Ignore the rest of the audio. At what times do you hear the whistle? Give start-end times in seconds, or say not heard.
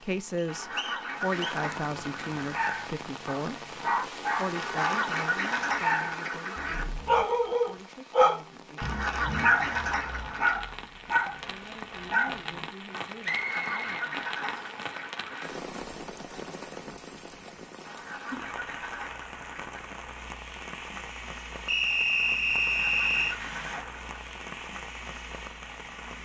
0.3-1.6, 13.2-14.8, 21.6-23.4.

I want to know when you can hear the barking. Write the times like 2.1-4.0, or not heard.
2.4-13.1.